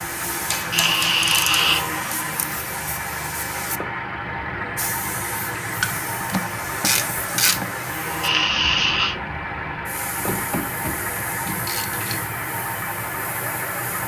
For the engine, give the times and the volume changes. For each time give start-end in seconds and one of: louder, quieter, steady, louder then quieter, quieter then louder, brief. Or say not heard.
0.0-14.0 steady.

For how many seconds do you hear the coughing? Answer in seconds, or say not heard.
2 s.